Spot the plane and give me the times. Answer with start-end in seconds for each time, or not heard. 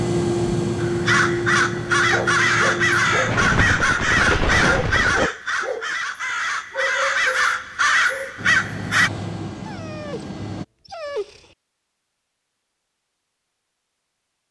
0.0-3.8, 8.3-10.7.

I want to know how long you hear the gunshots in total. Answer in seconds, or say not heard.
2 s.